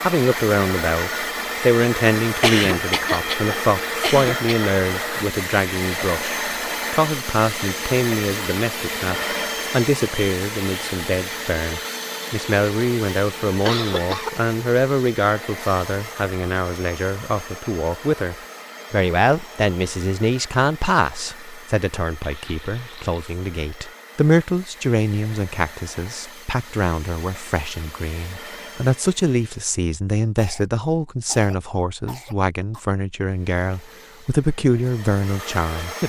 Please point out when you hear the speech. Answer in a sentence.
The speech can be heard from 0.0 to 36.0 s.